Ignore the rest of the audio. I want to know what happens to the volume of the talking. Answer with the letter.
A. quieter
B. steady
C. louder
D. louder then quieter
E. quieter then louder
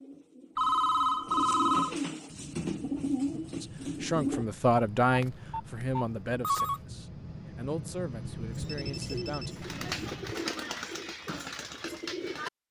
A.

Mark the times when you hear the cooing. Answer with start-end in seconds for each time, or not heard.
0.0-4.5, 8.5-12.5.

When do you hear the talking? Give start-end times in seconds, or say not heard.
3.6-10.2.